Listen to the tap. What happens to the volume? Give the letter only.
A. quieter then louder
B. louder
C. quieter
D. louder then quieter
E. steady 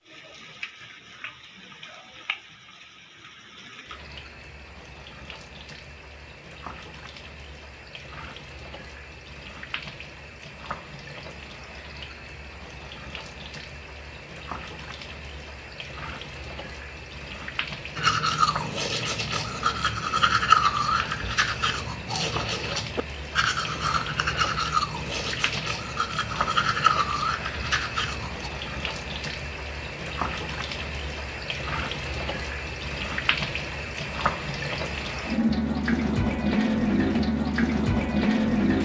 B.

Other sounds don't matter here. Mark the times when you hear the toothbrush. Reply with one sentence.
You can hear the toothbrush from 17.9 to 28.5 s.